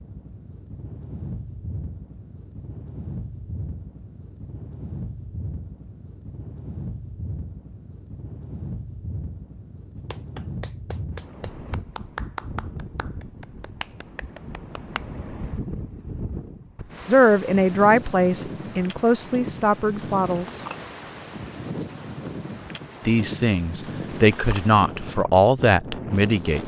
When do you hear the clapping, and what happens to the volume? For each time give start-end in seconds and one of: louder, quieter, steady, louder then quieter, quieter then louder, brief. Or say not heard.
10.1-15.2 quieter.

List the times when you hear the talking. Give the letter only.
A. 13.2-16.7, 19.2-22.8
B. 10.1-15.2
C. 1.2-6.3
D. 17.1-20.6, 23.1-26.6
D.